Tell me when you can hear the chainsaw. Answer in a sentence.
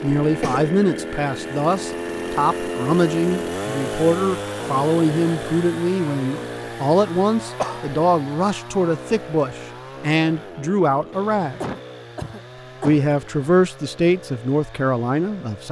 You can hear the chainsaw from 0.0 to 15.6 s.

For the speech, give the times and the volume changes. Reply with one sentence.
The speech can be heard from 0.0 to 11.7 s, at a steady volume; and briefly from 12.8 to 15.6 s.